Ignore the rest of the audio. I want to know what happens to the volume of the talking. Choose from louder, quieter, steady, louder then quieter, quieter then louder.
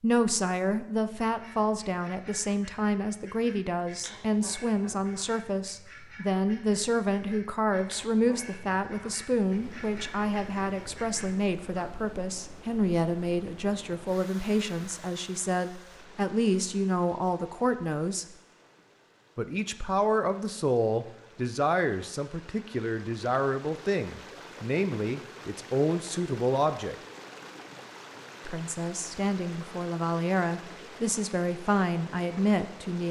steady.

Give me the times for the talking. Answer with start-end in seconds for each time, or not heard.
0.0-18.2, 19.4-26.9, 28.4-33.0.